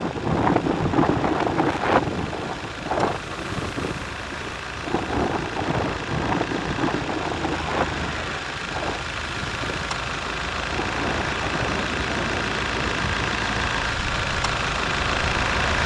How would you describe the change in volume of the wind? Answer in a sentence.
The volume of the wind goes down.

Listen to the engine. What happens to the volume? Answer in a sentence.
The loudness of the engine goes up.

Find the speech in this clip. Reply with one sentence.
You can't hear the speech here.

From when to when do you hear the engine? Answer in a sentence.
The engine can be heard from 0.0 to 15.8 s.